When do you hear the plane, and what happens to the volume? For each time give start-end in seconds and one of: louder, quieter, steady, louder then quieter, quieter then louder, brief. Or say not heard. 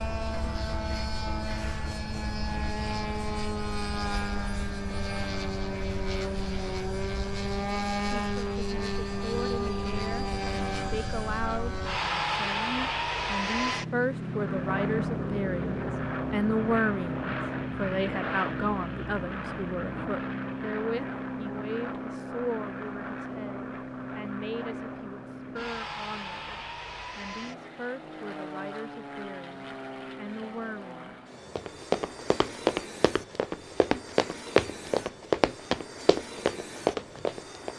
0.0-37.7 quieter.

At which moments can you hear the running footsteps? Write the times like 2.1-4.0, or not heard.
31.6-37.7.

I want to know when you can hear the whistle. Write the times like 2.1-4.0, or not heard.
not heard.